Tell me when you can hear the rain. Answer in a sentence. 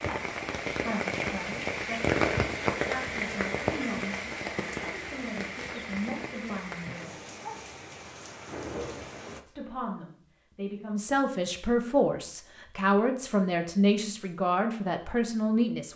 The rain can be heard from 0.0 to 9.4 s.